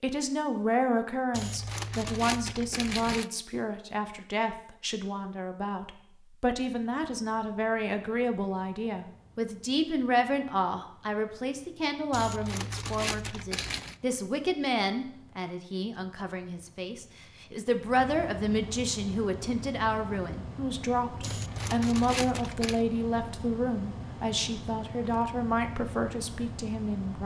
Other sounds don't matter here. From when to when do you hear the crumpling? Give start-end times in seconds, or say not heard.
1.3-3.3, 12.1-13.9, 21.2-22.8.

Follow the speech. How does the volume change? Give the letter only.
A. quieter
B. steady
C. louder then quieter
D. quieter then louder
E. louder
B.